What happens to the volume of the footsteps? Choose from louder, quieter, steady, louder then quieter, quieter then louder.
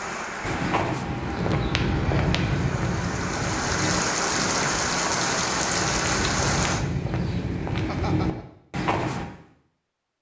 quieter then louder.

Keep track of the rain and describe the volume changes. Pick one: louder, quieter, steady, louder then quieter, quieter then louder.
louder.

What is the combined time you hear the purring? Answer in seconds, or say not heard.
not heard.